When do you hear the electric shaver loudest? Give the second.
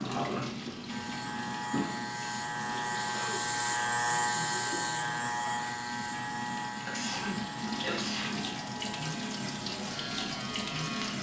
4 s.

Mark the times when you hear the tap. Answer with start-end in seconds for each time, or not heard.
0.0-11.1.